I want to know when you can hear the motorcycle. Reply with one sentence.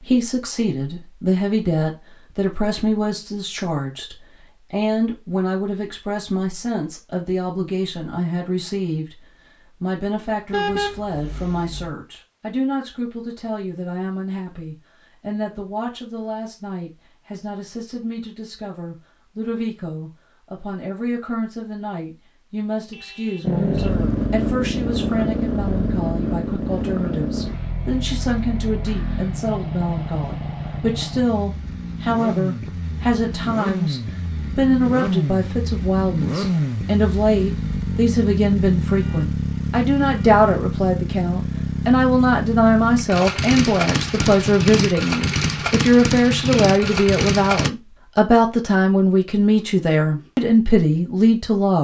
The motorcycle can be heard from 23.4 to 47.7 s.